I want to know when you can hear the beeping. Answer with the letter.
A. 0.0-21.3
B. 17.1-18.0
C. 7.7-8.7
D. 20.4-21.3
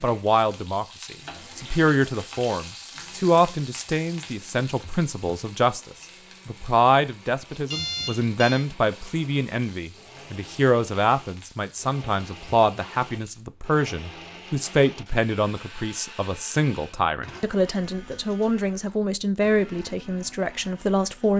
C.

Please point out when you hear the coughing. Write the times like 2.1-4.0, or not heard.
not heard.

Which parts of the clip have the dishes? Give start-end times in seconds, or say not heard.
not heard.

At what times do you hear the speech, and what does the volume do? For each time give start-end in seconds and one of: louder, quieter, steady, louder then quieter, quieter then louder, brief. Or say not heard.
0.0-21.3 steady.